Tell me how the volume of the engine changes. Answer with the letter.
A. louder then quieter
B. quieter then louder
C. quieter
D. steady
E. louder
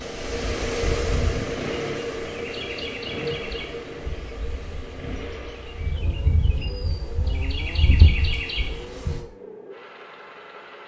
C.